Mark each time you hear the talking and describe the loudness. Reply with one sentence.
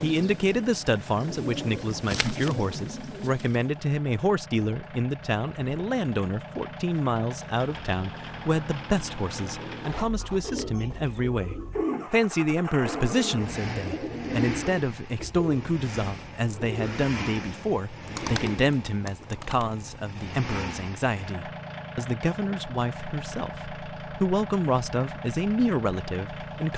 You can hear the talking from 0.0 to 26.7 s, at a steady volume.